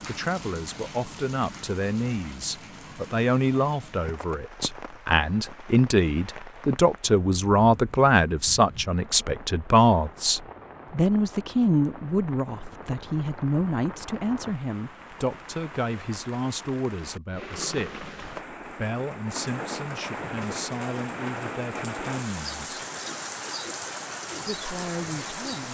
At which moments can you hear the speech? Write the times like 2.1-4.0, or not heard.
0.1-22.7, 24.4-25.6.